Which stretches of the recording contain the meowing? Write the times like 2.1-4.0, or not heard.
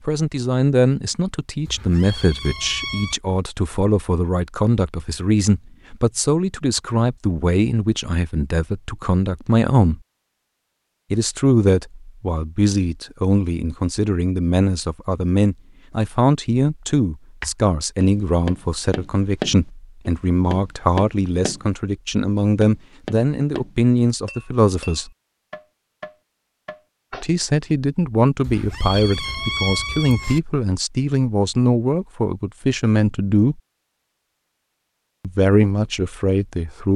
1.6-3.1, 28.4-30.4.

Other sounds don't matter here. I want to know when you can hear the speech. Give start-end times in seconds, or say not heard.
0.1-10.0, 11.1-25.1, 27.1-33.6, 35.2-36.9.